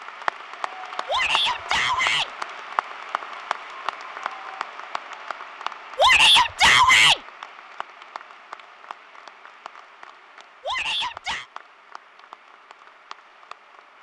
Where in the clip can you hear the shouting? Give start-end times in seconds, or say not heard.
1.1-2.3, 6.0-7.2, 10.6-11.4.